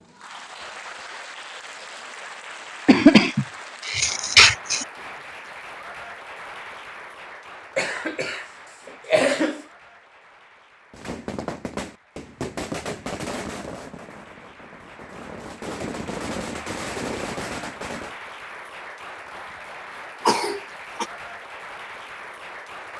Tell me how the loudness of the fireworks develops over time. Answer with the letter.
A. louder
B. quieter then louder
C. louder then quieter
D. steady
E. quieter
B.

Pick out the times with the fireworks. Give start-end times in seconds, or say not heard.
10.9-18.1.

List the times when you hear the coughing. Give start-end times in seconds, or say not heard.
2.9-4.8, 7.8-8.4, 9.1-9.6, 20.2-21.1.